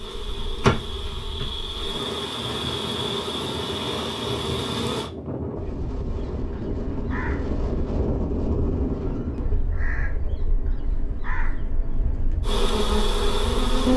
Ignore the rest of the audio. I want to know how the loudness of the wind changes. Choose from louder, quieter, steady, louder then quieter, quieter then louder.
louder then quieter.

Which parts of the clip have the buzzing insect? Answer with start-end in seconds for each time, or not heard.
0.0-5.1, 12.4-13.9.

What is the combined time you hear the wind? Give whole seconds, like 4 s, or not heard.
14 s.